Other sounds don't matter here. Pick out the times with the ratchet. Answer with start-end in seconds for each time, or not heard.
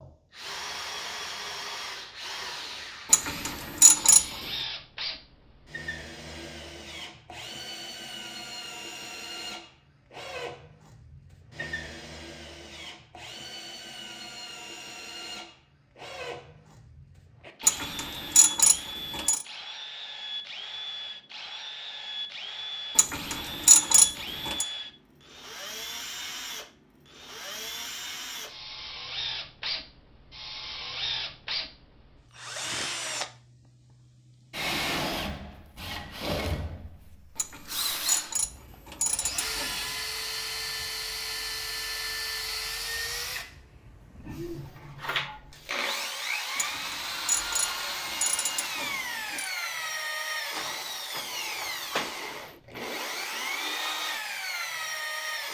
3.1-4.2, 17.6-19.4, 22.9-24.6, 37.4-39.9, 46.5-49.5.